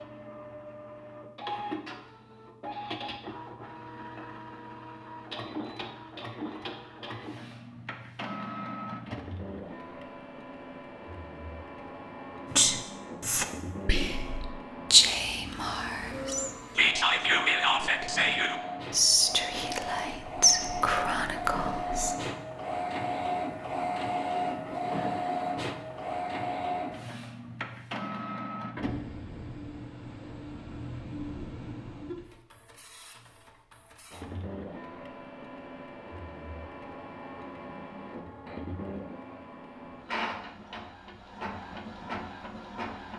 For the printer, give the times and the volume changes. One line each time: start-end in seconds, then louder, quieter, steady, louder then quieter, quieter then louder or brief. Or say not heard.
0.0-43.1 louder then quieter.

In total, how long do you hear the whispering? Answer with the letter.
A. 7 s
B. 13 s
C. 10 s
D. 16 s
C.